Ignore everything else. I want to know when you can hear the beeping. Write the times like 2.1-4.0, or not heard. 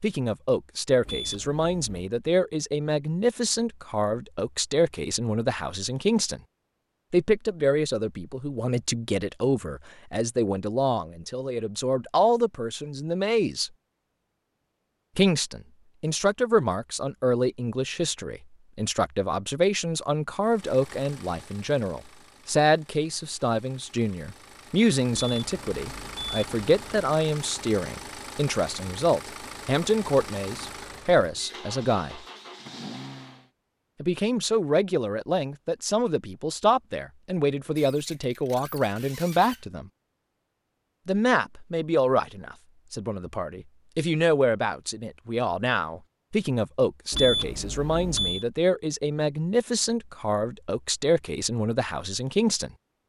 1.1-2.1, 25.1-27.1, 47.1-48.5.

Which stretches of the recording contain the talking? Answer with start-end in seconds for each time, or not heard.
0.0-6.4, 7.1-13.7, 15.2-32.2, 34.0-39.9, 41.0-52.7.